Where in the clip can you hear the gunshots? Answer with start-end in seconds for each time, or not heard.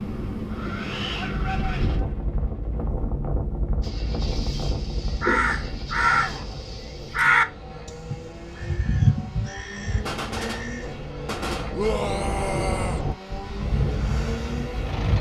10.1-12.0.